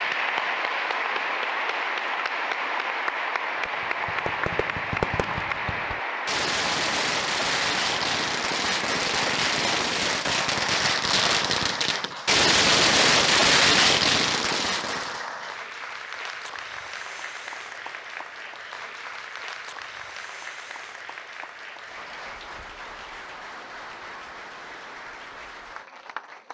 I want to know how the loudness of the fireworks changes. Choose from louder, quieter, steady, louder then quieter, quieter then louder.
louder.